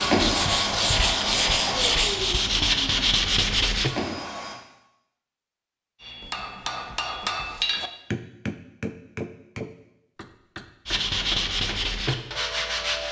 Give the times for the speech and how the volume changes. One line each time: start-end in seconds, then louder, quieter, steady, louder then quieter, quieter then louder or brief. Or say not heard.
not heard.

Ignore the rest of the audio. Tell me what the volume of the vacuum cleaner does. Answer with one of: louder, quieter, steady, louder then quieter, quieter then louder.
quieter then louder.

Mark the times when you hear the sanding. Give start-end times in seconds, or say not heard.
0.0-4.0, 10.8-13.0.